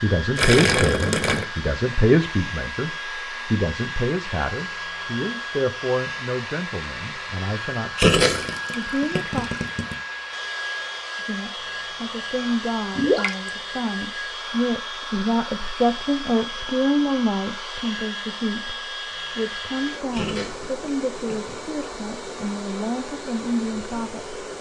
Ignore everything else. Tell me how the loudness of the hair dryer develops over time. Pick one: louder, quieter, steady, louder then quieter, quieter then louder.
steady.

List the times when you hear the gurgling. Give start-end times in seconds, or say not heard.
0.3-1.4, 8.0-9.9, 12.9-13.5, 20.1-21.6.